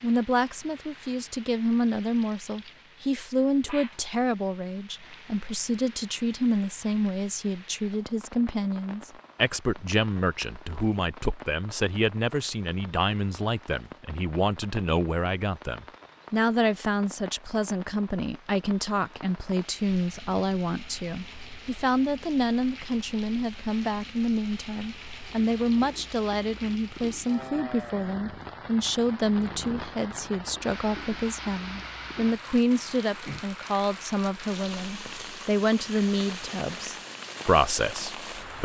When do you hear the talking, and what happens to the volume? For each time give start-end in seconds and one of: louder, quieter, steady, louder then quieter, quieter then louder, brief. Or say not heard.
0.0-38.6 steady.